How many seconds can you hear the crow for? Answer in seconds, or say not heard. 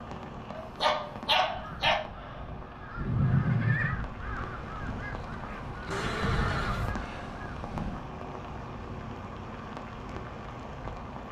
7 s.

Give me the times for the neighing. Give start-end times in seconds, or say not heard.
3.0-4.0, 5.9-6.9.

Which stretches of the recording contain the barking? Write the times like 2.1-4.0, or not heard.
0.6-2.0.